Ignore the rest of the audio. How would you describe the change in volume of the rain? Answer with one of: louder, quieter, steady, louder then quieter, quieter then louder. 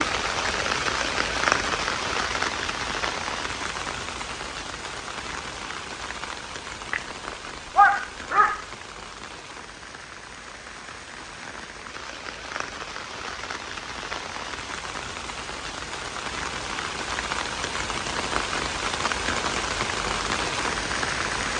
quieter then louder.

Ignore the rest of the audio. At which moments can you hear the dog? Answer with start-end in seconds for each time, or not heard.
6.9-8.6.